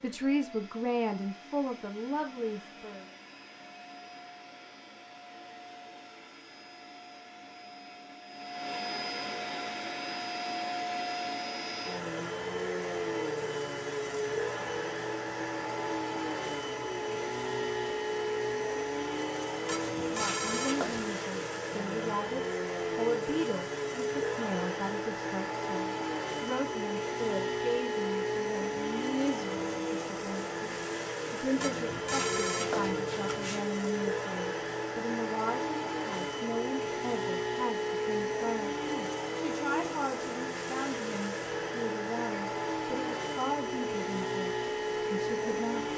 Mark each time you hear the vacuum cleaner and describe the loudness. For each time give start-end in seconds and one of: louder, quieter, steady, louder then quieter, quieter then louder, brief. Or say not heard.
0.0-45.9 louder.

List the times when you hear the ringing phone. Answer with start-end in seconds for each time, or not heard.
19.6-21.1, 31.6-33.6.